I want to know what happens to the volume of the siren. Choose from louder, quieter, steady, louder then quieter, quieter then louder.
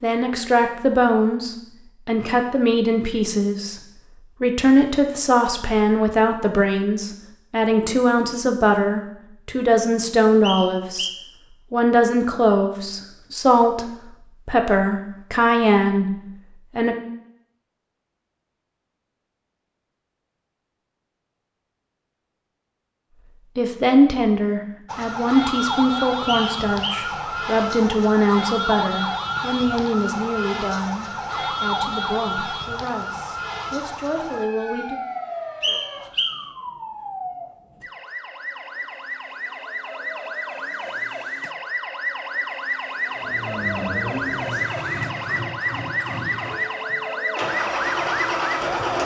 quieter then louder.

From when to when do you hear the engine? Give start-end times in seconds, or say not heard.
43.1-49.0.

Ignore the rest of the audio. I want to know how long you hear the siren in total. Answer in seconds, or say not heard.
24 s.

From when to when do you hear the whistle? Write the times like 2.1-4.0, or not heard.
10.4-11.2, 26.2-27.1, 35.6-36.4.